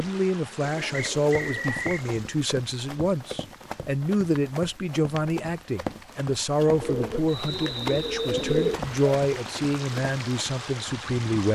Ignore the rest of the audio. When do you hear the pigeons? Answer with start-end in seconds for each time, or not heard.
0.6-2.3, 6.7-9.1.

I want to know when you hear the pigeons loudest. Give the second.
9 s.